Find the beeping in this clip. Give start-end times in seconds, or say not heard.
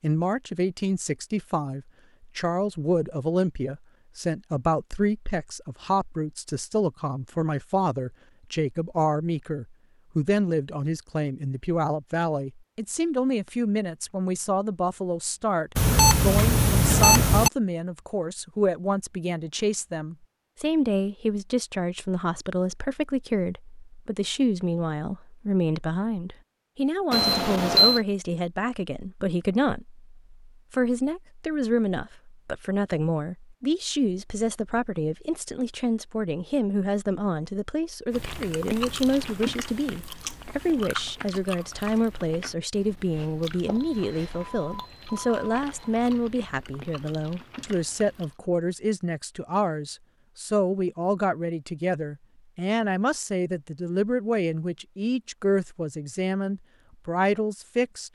15.8-17.5, 27.1-28.0, 43.6-45.4.